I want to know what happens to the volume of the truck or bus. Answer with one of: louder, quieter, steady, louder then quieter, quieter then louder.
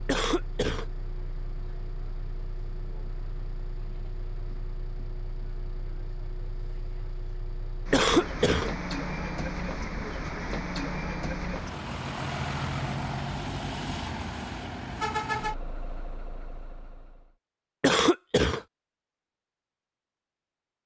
louder.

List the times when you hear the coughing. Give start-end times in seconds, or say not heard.
0.1-0.8, 7.9-8.7, 17.8-18.6.